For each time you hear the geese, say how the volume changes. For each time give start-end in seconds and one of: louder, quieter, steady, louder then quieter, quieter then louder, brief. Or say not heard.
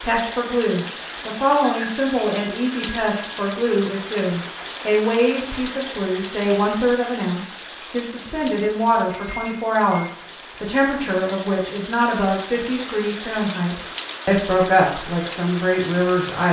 not heard.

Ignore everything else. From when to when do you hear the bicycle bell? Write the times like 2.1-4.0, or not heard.
1.6-3.5, 9.1-10.1.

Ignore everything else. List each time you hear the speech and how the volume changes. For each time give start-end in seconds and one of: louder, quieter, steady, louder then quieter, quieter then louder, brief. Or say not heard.
0.0-16.4 steady.